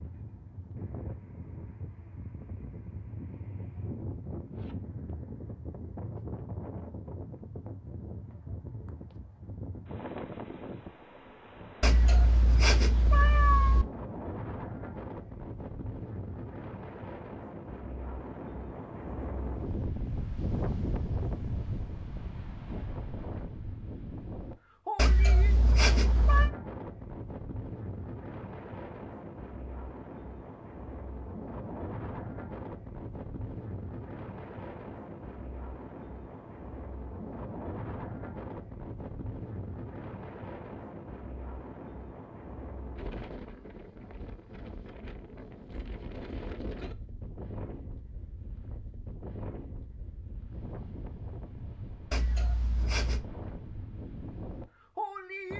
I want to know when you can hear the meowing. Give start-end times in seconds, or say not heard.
11.8-13.8, 24.9-26.5, 52.1-53.2.